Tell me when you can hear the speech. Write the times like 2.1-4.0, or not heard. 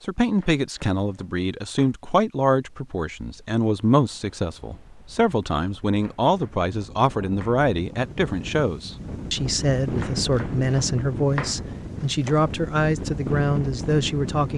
0.0-14.5.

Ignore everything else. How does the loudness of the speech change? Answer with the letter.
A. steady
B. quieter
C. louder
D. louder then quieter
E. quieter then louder
A.